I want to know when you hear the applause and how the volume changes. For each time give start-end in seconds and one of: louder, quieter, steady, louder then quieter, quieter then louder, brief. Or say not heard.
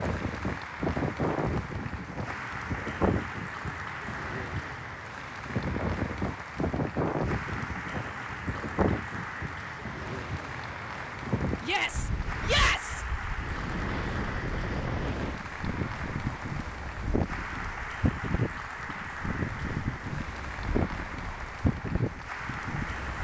0.0-23.1 steady.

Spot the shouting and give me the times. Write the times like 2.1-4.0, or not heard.
11.6-13.1.